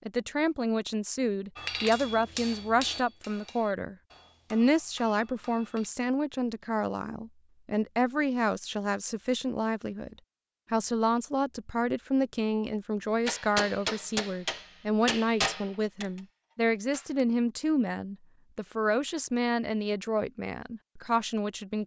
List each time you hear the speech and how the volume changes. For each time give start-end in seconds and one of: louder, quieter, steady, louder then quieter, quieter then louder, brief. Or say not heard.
0.1-21.8 steady.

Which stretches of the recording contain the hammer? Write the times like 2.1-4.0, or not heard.
1.6-5.9, 13.2-17.2.